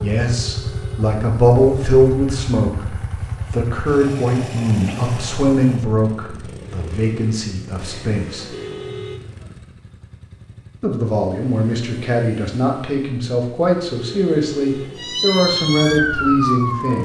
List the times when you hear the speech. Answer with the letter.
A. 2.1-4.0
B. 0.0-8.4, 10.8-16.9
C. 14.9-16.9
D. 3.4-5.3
B.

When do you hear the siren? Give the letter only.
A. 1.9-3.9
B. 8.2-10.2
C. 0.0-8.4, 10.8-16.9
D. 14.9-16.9
D.